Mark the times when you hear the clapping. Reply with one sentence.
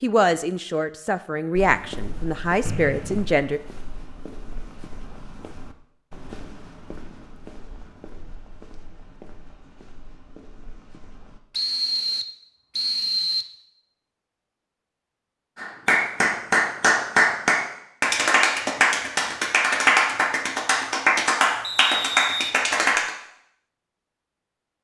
The clapping can be heard from 15.6 to 23.1 s.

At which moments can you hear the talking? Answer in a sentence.
The talking can be heard from 0.0 to 3.6 s.